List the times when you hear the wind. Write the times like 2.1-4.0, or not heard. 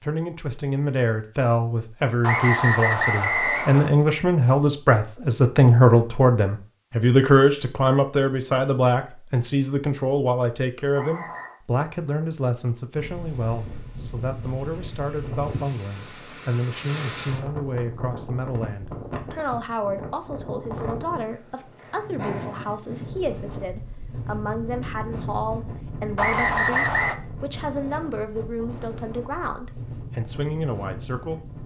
12.9-31.6.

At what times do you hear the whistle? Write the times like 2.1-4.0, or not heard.
2.2-3.9, 10.9-11.6, 26.1-27.1.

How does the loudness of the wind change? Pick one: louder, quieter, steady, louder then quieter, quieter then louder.
steady.